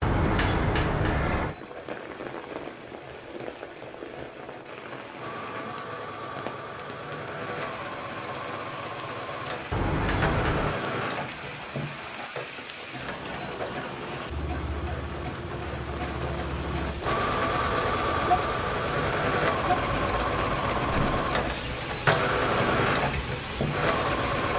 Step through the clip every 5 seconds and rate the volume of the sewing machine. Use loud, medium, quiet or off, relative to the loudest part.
quiet, medium, medium, loud, loud.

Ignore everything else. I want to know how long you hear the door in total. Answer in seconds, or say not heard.
3 s.